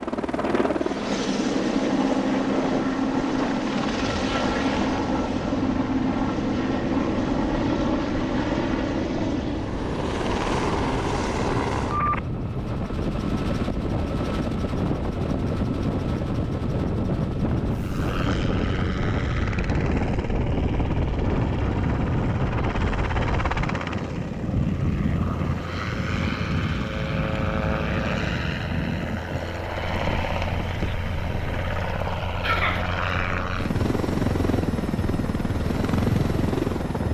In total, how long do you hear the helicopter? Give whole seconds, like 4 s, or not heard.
37 s.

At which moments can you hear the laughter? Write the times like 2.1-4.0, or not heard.
32.4-32.9.